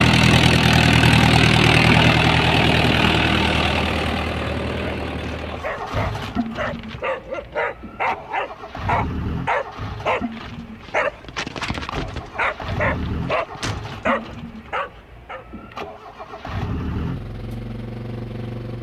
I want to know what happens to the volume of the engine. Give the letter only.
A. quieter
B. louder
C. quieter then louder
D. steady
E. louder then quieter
A.